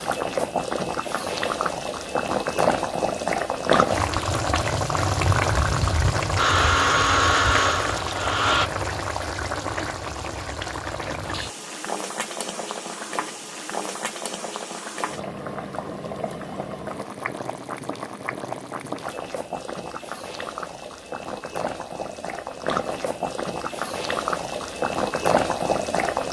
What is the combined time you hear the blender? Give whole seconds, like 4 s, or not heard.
2 s.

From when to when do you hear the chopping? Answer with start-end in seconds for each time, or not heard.
not heard.